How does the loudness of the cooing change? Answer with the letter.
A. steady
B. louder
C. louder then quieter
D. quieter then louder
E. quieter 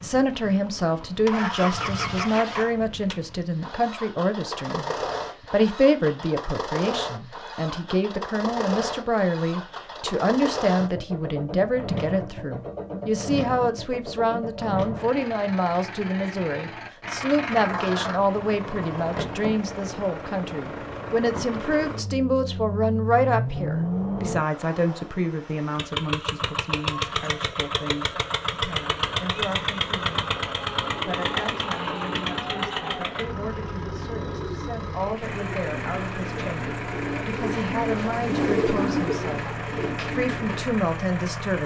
B.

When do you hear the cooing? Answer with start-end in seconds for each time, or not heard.
30.8-40.6.